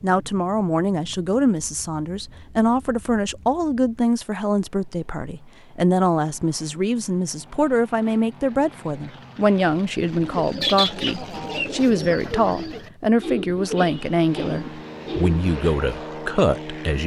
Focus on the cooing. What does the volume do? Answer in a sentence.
The volume of the cooing goes down.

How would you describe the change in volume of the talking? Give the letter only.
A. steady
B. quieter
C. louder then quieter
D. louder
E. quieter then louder
A.